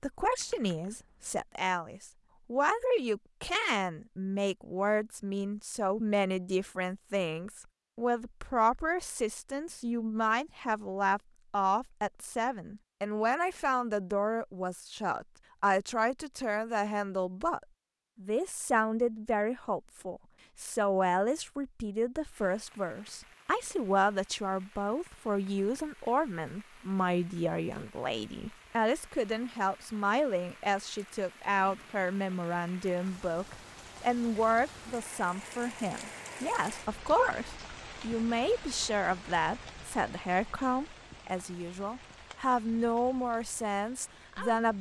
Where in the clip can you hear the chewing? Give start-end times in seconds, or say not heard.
not heard.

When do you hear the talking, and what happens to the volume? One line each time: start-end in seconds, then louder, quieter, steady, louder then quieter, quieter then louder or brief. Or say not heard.
0.0-44.7 steady.